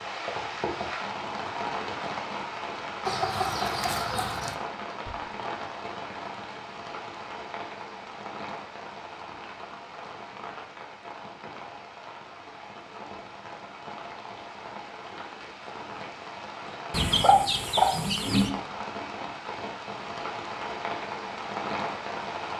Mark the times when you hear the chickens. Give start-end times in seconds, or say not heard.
3.0-4.5, 16.9-18.5.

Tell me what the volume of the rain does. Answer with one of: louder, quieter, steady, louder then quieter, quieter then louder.
quieter then louder.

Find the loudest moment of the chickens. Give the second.
17 s.